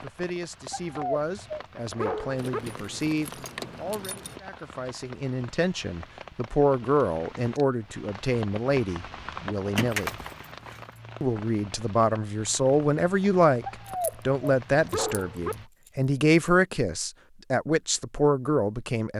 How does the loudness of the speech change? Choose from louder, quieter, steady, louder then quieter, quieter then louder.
louder.